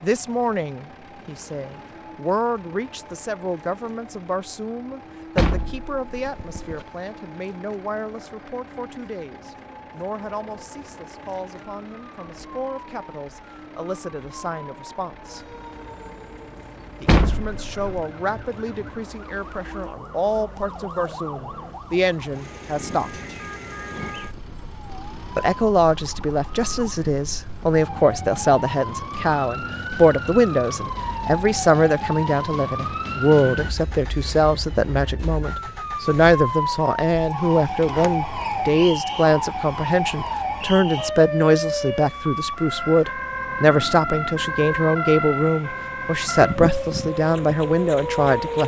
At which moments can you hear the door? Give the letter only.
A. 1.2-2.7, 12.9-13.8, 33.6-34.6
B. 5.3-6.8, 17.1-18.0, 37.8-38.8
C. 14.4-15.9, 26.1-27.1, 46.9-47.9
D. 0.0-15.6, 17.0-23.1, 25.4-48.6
B.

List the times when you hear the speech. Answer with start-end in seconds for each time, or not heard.
0.0-15.6, 17.0-23.1, 25.4-48.6.